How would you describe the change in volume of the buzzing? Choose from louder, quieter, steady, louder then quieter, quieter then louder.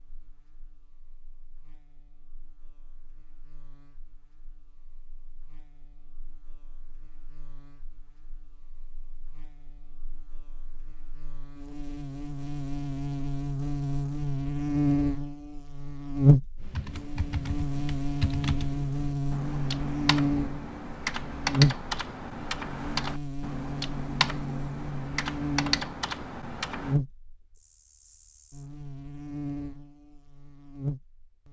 louder then quieter.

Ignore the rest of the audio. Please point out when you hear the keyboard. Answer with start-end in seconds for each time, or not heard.
16.6-27.0.